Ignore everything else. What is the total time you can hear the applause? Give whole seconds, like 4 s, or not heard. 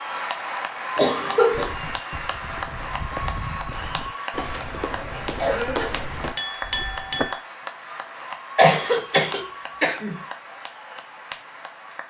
12 s.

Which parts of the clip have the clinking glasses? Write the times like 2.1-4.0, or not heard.
6.3-7.4.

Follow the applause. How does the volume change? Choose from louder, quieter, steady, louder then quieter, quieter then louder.
quieter.